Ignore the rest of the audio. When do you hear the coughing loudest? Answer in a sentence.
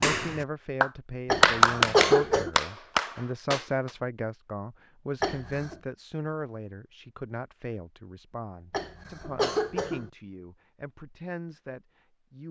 The loudest moment of the coughing is at 2 seconds.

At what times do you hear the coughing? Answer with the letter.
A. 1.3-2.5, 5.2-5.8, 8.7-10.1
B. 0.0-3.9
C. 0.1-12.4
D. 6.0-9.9
A.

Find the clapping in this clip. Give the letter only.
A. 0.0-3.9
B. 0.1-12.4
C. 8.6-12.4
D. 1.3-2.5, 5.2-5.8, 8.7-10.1
A.